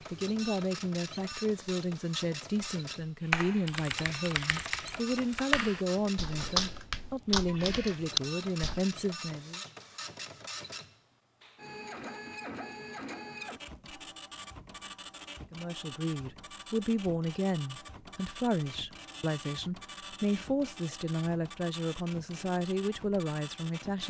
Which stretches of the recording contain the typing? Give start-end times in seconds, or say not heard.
3.3-8.8.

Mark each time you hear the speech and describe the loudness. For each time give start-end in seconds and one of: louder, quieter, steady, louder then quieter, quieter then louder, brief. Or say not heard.
0.1-9.6 steady
15.5-24.0 steady.